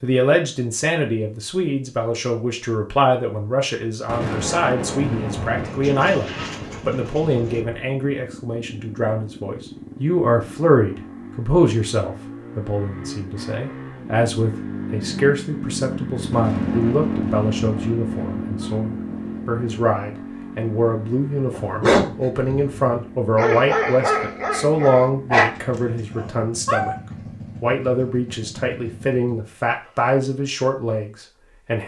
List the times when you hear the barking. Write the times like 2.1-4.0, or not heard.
21.5-27.0.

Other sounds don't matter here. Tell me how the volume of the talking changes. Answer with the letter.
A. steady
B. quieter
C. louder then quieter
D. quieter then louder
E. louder
A.